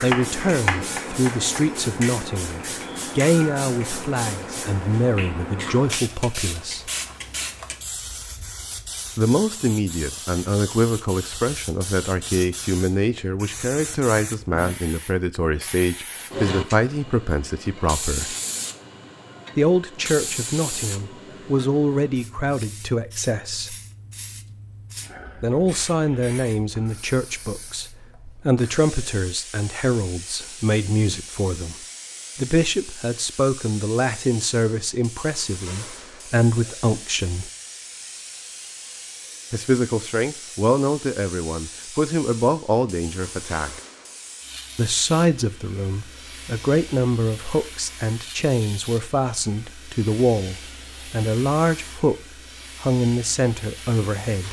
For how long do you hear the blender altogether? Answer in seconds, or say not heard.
not heard.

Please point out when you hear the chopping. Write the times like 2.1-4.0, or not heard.
0.0-1.6.